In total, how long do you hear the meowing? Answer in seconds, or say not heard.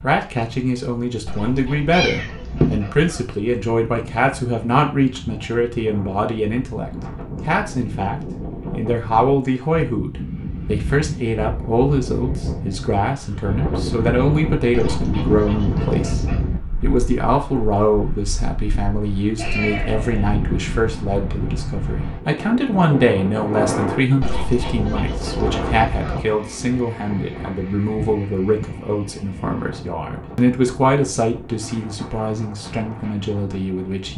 3 s.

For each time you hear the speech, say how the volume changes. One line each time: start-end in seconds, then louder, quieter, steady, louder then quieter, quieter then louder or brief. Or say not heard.
0.0-34.1 steady.